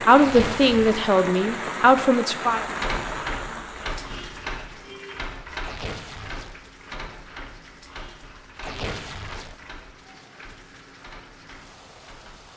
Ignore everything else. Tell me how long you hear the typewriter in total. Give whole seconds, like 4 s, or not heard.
10 s.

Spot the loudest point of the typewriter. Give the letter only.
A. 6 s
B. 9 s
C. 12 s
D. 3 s
D.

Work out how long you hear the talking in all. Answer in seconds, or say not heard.
3 s.